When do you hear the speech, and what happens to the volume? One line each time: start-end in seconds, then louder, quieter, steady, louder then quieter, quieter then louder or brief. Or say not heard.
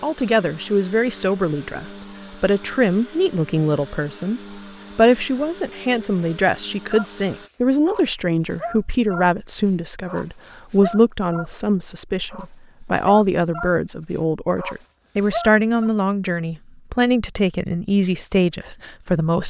0.0-19.4 steady.